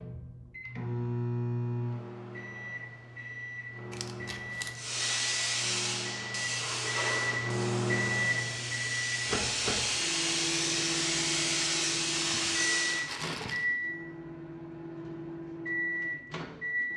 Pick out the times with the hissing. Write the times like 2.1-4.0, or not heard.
4.8-13.1.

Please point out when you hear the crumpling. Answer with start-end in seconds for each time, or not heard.
3.9-4.8, 12.1-13.7.